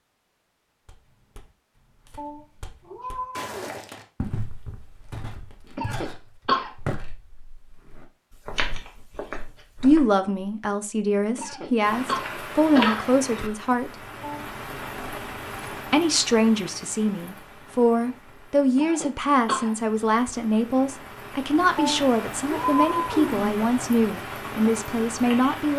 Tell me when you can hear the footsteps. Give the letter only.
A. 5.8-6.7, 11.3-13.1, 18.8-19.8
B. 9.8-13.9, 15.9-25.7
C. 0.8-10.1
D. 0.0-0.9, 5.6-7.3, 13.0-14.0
C.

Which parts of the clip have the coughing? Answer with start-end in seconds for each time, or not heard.
5.8-6.7, 11.3-13.1, 18.8-19.8.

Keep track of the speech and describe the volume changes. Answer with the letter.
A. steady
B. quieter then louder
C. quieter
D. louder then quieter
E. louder
A.